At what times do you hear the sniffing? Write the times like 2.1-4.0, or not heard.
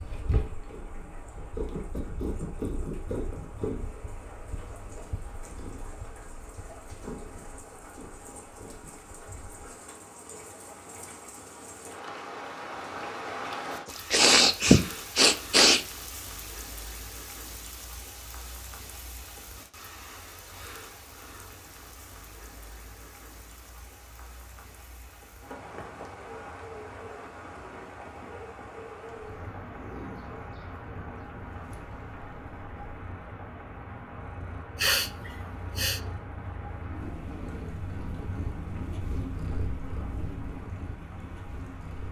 14.1-15.8, 34.8-36.0.